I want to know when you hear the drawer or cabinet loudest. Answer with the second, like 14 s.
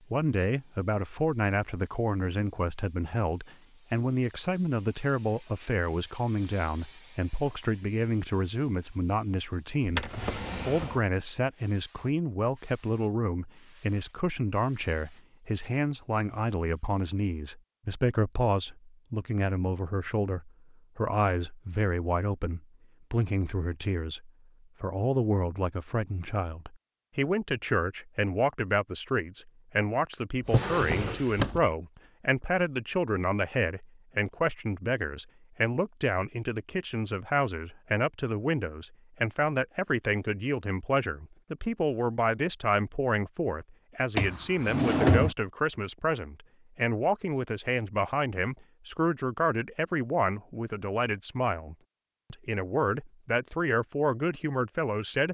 45 s.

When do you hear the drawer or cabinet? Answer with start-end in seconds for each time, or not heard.
9.8-11.0, 30.4-31.6, 44.1-45.4.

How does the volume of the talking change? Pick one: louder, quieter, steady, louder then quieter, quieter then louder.
steady.